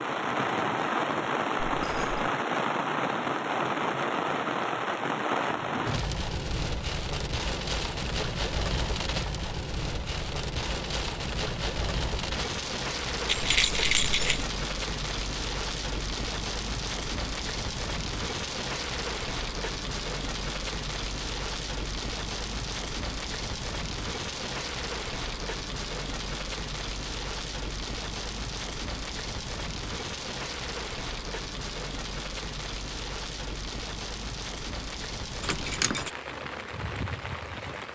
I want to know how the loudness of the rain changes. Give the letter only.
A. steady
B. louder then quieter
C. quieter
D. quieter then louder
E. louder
C.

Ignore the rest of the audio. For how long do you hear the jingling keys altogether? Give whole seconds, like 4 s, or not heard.
2 s.